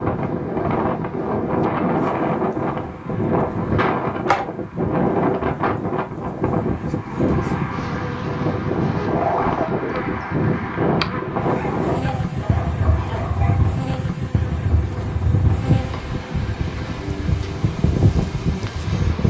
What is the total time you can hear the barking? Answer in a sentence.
The barking can be heard for 2 seconds in total.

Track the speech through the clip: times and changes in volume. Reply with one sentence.
You can't hear the speech here.